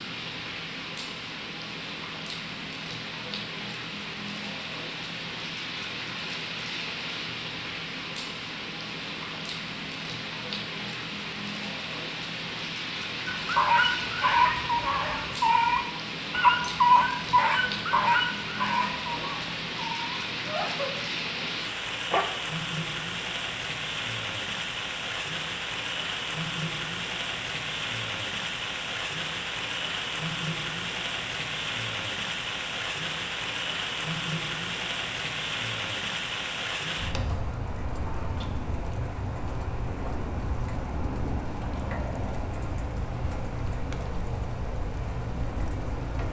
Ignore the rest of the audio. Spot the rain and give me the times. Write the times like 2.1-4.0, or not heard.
0.0-46.2.